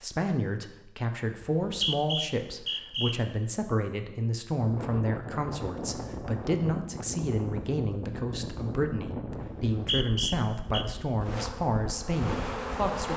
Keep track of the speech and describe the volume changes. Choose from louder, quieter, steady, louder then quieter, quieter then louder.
steady.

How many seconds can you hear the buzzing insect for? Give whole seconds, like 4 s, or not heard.
2 s.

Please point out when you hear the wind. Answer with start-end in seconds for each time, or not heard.
4.5-13.0.